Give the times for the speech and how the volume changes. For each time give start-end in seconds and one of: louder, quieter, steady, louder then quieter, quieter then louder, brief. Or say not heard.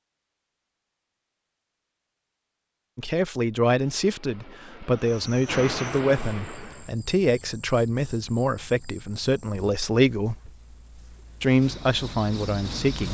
3.0-10.4 steady
11.4-13.0 brief.